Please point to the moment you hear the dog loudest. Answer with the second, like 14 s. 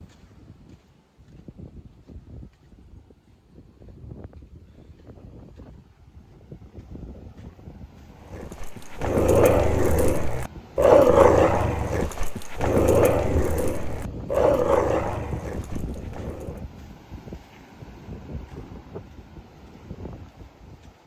11 s.